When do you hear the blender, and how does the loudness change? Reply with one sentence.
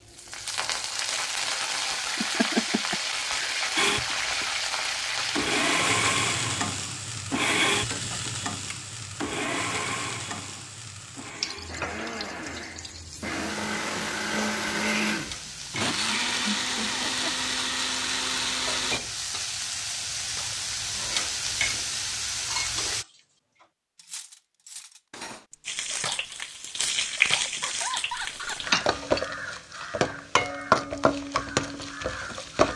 The blender can be heard from 3.8 to 19.0 s, getting quieter then louder.